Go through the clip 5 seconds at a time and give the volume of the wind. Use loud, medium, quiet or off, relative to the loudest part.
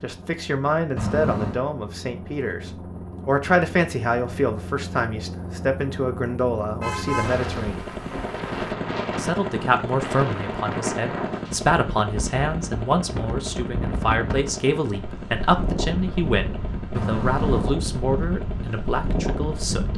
off, loud, loud, loud.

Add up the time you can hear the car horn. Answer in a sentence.
You can hear the car horn for 3 seconds altogether.